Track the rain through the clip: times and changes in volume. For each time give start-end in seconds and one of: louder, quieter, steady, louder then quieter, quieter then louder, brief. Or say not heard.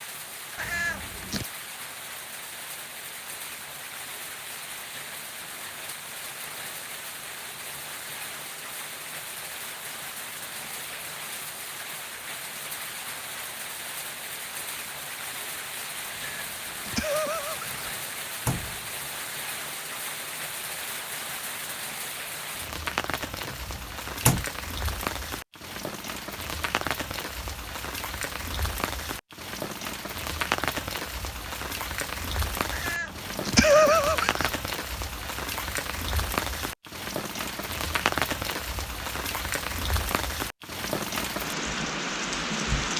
0.0-42.9 louder.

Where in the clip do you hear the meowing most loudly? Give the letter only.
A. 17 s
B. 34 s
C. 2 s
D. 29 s
B.